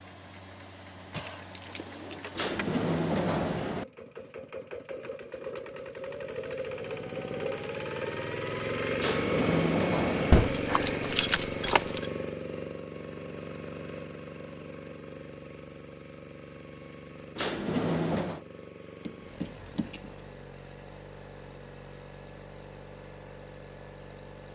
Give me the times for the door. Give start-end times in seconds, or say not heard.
2.4-3.9, 8.9-10.5, 17.4-18.4.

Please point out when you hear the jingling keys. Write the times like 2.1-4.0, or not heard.
1.1-2.5, 10.3-12.1, 19.0-20.2.